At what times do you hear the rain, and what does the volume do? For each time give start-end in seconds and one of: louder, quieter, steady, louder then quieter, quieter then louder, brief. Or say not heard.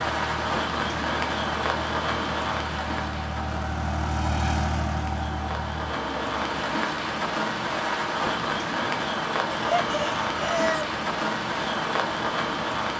0.0-12.9 quieter then louder.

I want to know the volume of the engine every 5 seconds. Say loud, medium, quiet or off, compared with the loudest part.
loud, loud, off.